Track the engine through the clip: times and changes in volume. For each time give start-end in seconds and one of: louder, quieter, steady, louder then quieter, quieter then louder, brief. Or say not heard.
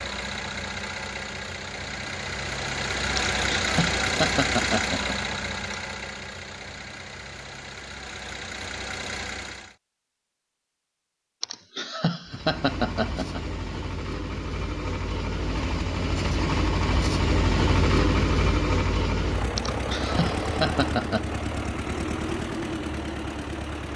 0.0-9.8 louder then quieter
12.2-23.9 louder then quieter.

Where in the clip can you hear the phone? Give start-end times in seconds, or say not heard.
not heard.